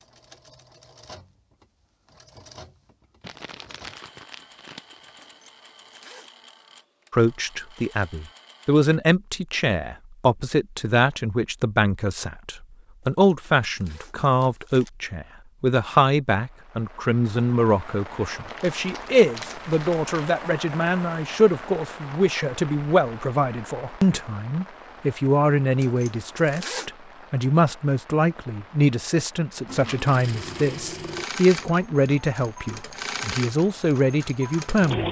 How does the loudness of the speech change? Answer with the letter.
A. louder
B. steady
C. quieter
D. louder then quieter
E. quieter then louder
B.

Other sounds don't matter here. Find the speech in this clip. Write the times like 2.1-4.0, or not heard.
7.1-35.0.